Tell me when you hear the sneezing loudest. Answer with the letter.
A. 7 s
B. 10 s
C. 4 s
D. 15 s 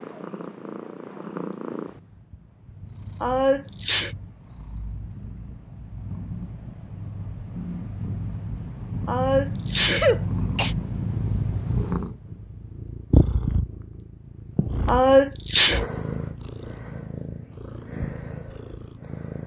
D.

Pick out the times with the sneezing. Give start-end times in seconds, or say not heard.
3.2-4.1, 9.1-10.8, 14.8-15.8.